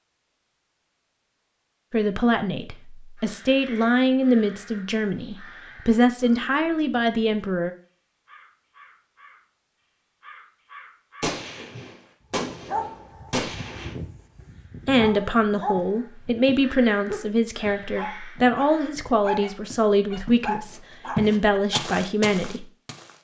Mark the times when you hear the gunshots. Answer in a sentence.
The gunshots can be heard from 11.2 to 13.9 s.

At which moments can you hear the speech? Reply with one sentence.
You can hear the speech from 1.9 to 7.7 s and from 14.8 to 22.6 s.